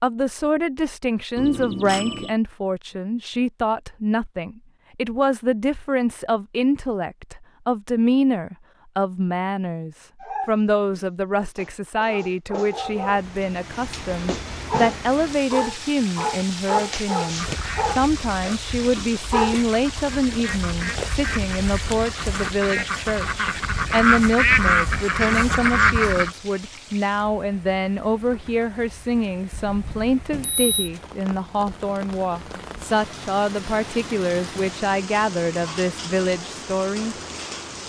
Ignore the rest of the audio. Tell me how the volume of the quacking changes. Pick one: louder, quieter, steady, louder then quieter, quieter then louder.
louder.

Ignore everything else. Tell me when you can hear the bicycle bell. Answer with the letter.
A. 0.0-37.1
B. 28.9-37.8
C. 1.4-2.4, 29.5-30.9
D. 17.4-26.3
C.